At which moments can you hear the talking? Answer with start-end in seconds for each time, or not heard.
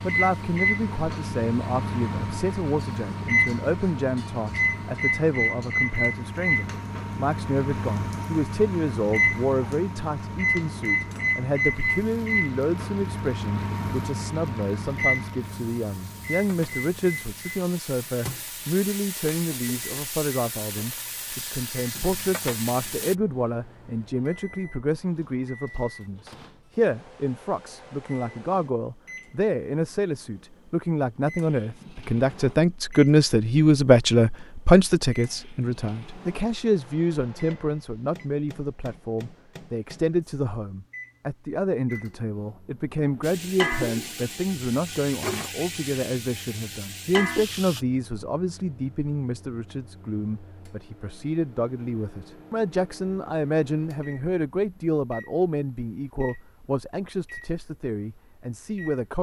0.0-59.1.